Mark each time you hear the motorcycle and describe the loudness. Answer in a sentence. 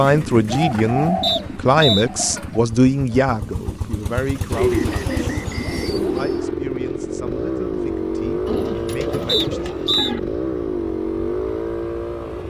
You can hear the motorcycle from 0.0 to 12.4 s, getting louder.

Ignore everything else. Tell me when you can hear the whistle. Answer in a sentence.
You can hear the whistle from 1.2 to 2.0 s, from 4.5 to 6.5 s and from 9.2 to 10.2 s.